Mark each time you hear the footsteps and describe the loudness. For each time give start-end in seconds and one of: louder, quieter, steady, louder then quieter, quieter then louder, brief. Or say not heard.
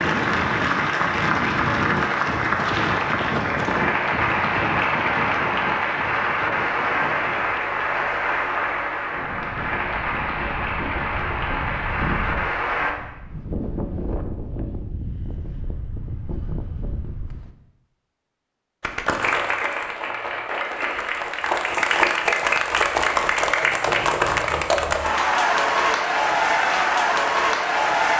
not heard.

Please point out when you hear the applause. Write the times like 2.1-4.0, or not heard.
0.0-12.9, 18.8-28.1.